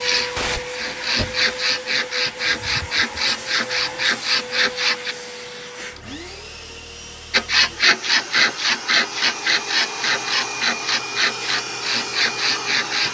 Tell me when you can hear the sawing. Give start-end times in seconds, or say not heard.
0.0-5.2, 7.3-13.0.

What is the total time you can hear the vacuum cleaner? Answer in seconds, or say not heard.
13 s.